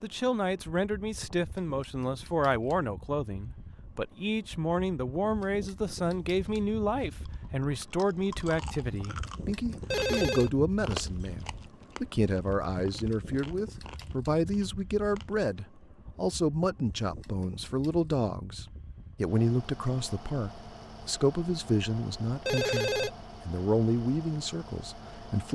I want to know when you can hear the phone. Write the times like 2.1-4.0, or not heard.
9.9-10.5, 22.4-23.1.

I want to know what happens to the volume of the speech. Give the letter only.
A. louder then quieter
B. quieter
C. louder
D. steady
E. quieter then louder
D.